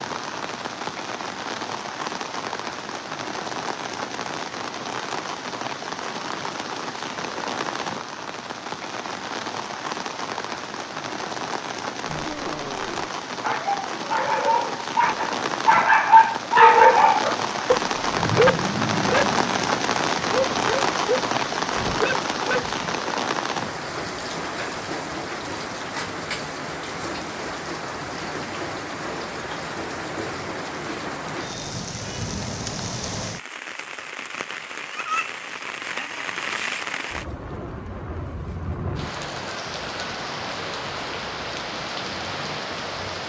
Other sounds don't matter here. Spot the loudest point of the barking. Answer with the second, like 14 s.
17 s.